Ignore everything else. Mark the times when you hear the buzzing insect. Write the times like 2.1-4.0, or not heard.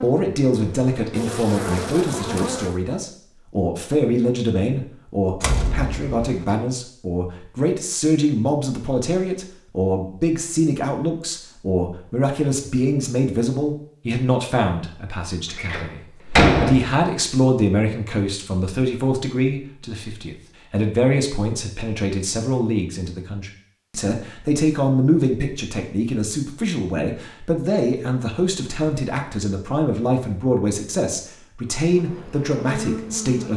0.0-2.8, 31.8-33.5.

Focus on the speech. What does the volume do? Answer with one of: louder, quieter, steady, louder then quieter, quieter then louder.
steady.